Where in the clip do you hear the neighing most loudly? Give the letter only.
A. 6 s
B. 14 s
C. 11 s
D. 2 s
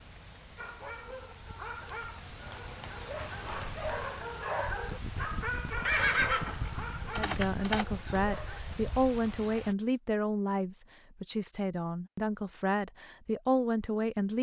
A.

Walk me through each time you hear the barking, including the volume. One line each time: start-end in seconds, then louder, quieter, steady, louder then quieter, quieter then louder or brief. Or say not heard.
0.6-8.6 louder then quieter.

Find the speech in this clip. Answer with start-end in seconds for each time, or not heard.
7.2-14.3.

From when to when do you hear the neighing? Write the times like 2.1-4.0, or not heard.
5.8-7.8.